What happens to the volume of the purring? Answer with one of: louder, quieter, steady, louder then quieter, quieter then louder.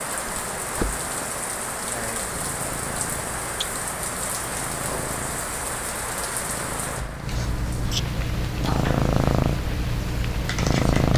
louder.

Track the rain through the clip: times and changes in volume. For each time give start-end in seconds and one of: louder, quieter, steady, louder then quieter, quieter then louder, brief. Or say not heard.
0.0-11.1 quieter.